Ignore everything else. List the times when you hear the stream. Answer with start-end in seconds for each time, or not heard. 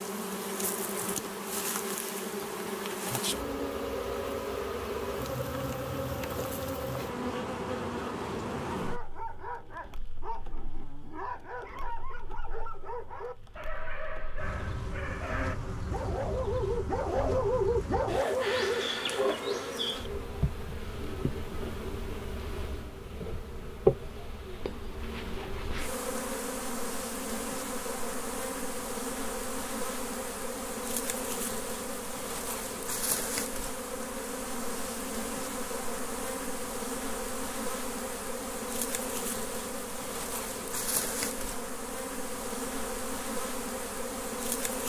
not heard.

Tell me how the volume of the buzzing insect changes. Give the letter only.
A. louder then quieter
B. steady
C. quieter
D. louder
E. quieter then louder
E.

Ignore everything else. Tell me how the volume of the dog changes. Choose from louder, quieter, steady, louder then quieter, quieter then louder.
louder.